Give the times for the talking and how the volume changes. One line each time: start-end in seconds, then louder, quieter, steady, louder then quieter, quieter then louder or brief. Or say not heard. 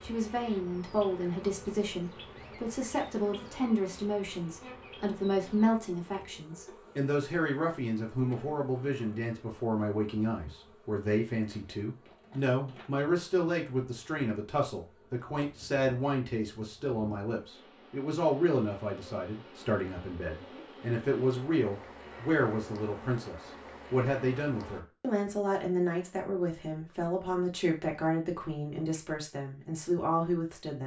0.0-30.8 steady.